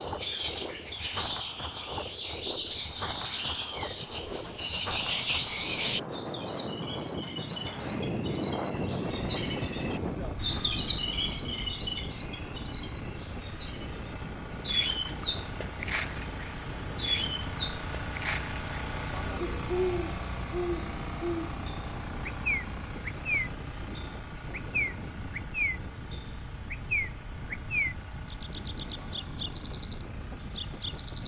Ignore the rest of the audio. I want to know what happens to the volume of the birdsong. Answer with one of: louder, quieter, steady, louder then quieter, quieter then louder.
louder then quieter.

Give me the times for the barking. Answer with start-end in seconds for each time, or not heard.
not heard.